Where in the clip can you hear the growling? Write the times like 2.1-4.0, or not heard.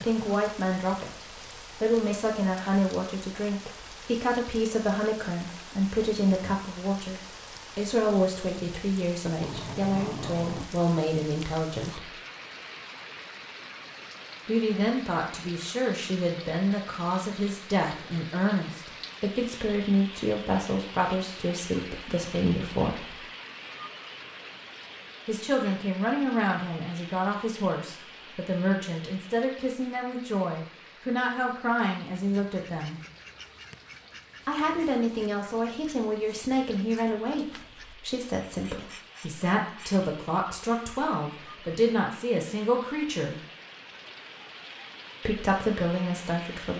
9.4-10.8.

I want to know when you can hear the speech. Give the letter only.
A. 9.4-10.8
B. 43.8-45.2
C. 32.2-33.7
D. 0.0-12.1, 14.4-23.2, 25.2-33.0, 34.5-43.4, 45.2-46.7
D.